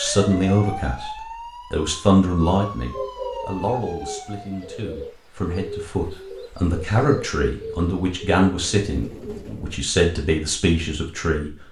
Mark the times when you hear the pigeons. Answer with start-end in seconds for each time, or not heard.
2.4-9.8.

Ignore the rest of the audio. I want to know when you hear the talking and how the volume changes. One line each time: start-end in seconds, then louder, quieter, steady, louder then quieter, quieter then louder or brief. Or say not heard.
0.0-1.1 brief
1.7-11.5 quieter then louder.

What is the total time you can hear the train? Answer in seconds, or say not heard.
not heard.